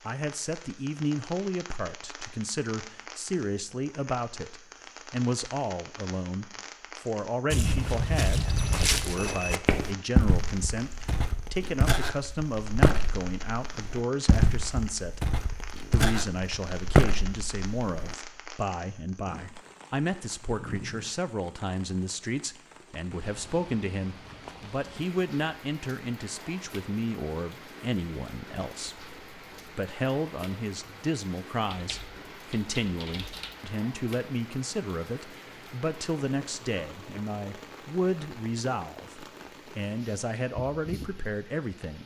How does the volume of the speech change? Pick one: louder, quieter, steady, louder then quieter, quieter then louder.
steady.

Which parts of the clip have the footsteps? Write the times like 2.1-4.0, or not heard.
7.5-18.1.